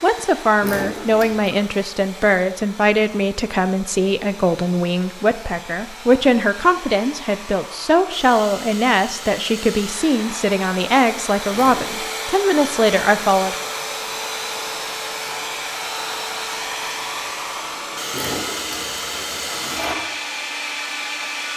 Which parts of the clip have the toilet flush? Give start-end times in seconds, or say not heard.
0.6-1.6, 11.5-12.2, 18.1-19.9.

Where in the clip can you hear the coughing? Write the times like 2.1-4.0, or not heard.
not heard.